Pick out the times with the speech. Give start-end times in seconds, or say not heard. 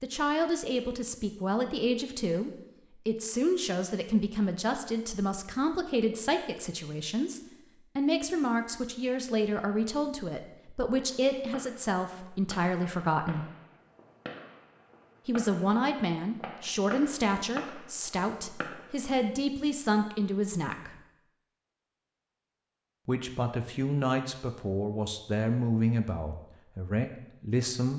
0.0-13.4, 15.2-21.0, 23.1-27.9.